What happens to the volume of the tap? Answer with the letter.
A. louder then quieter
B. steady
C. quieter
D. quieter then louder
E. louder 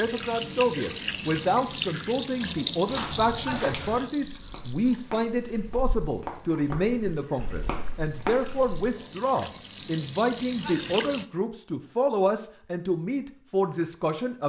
D.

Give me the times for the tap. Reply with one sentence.
You can hear the tap from 0.0 to 11.2 s.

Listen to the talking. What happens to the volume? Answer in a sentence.
The loudness of the talking stays about the same.